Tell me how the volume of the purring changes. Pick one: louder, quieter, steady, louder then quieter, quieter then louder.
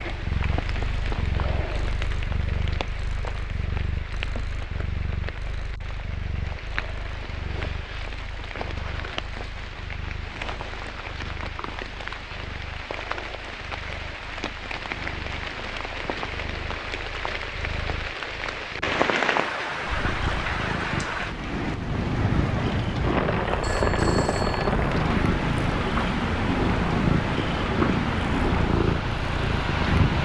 quieter then louder.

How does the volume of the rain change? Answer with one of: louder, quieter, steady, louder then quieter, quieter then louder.
louder.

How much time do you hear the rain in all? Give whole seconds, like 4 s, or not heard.
30 s.